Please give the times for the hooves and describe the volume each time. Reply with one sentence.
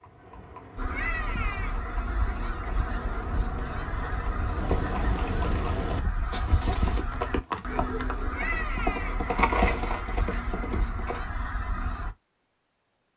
The hooves can be heard from 0.0 to 11.2 s, getting louder.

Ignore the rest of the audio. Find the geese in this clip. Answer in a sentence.
The geese can be heard from 0.8 to 12.2 s.